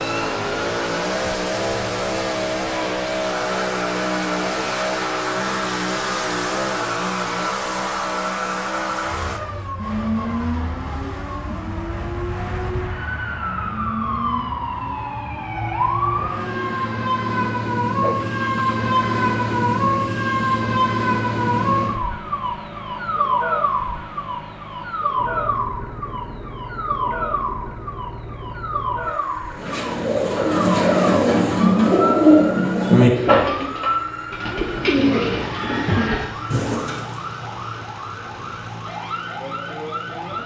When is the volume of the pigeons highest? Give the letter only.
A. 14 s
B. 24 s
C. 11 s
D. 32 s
D.